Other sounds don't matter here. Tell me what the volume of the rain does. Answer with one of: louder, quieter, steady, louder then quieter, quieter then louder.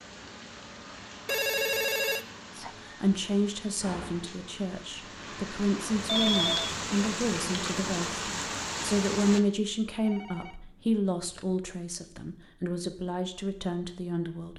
louder.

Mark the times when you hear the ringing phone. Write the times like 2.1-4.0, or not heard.
1.2-2.7, 6.0-6.8, 10.0-11.6.